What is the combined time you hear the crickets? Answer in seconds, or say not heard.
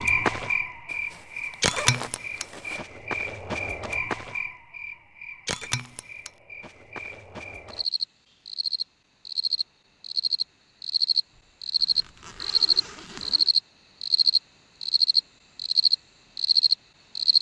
17 s.